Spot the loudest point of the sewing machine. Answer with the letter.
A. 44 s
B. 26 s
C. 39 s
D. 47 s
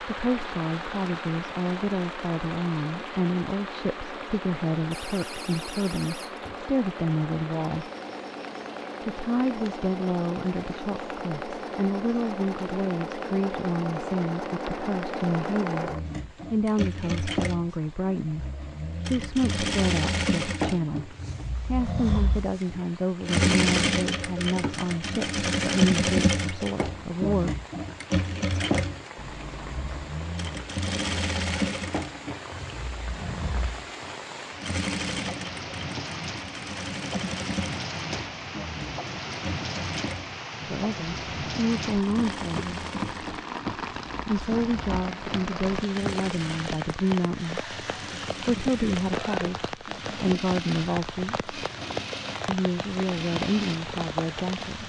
B.